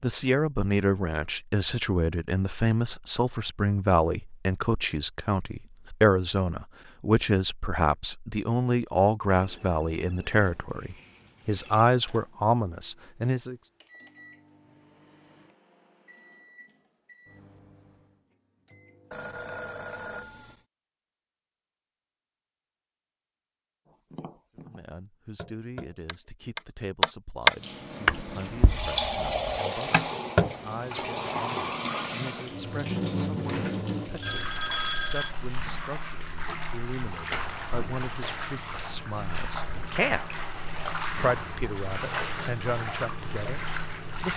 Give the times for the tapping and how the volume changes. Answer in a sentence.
You can hear the tapping from 23.9 to 30.6 s, getting louder then quieter.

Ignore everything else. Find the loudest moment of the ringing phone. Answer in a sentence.
The volume of the ringing phone peaks at 35 seconds.